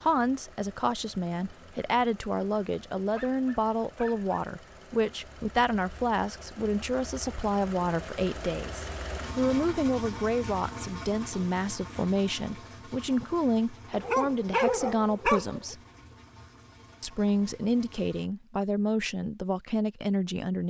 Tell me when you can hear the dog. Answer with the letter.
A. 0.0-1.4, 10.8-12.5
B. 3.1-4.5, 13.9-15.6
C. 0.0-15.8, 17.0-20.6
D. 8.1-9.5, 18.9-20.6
B.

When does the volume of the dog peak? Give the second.
15 s.